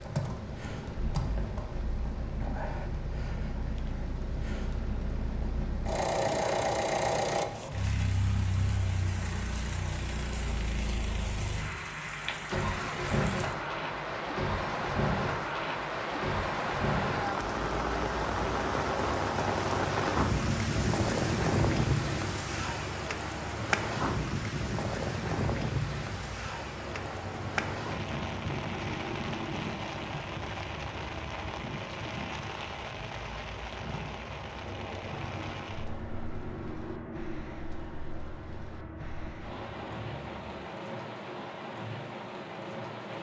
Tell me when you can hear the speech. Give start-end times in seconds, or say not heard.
not heard.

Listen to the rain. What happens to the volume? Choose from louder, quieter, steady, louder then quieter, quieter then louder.
louder then quieter.